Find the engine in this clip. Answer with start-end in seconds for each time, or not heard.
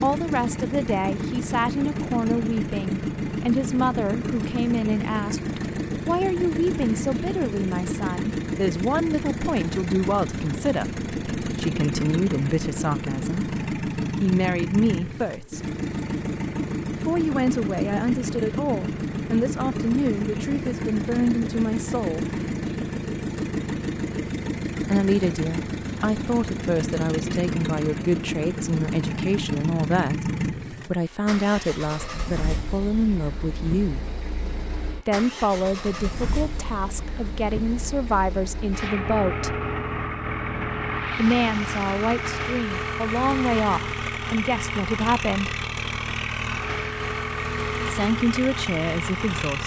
0.0-49.6.